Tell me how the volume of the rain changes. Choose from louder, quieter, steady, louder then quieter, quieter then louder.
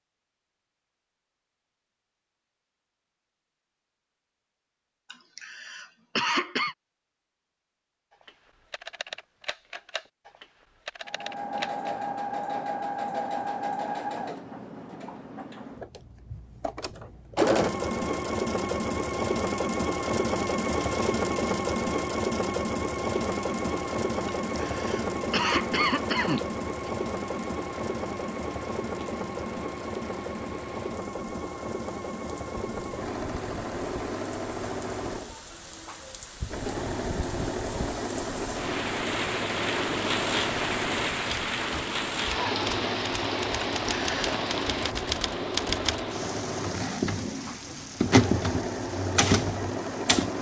louder then quieter.